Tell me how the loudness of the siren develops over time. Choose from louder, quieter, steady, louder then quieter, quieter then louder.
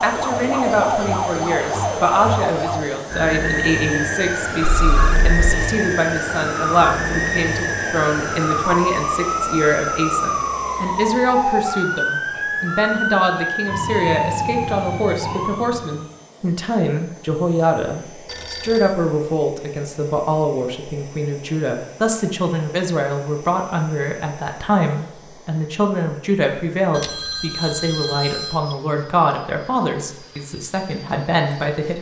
steady.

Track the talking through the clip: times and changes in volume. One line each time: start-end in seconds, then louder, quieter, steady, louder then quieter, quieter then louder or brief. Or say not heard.
0.0-31.9 steady.